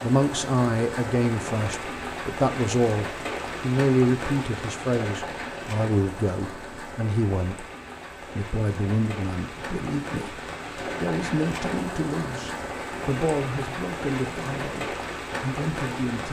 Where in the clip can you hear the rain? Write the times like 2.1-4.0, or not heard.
0.0-16.2.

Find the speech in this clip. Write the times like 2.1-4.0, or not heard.
0.0-16.2.